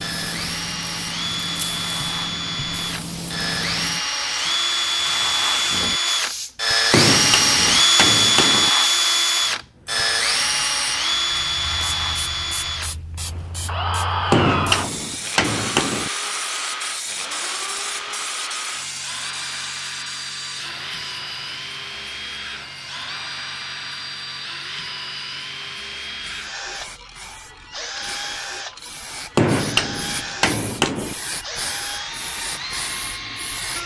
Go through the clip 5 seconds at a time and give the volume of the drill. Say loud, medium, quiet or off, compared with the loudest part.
medium, loud, medium, quiet, quiet, quiet, quiet.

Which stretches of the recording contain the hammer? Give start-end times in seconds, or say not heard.
6.9-8.7, 14.3-16.1, 29.4-31.1.